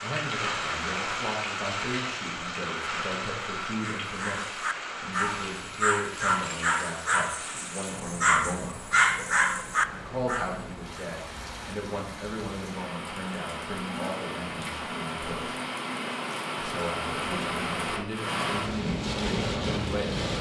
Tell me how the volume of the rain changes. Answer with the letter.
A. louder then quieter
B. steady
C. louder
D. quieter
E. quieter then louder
E.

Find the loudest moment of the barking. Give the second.
9 s.